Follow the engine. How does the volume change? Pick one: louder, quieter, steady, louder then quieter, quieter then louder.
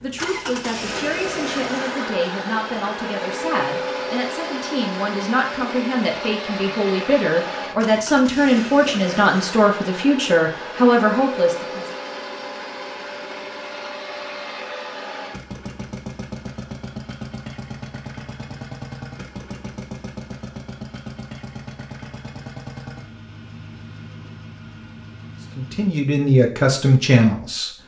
quieter.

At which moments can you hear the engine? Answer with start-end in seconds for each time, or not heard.
0.0-25.9.